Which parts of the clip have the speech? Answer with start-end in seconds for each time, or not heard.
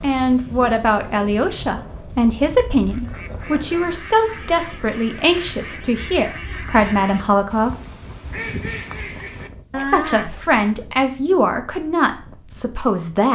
0.0-7.7, 9.9-13.2.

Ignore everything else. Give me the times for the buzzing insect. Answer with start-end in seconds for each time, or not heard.
not heard.